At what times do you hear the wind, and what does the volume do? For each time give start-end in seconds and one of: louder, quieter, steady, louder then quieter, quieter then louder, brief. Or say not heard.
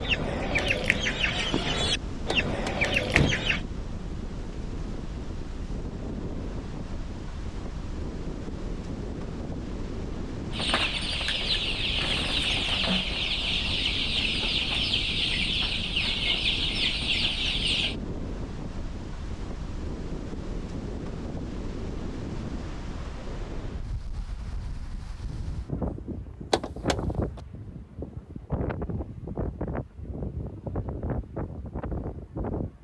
0.0-32.8 steady.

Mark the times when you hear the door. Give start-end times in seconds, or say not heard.
2.2-3.5, 26.5-26.9.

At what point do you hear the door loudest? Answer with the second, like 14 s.
3 s.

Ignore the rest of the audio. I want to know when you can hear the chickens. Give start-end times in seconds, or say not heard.
0.0-3.6, 10.5-17.9.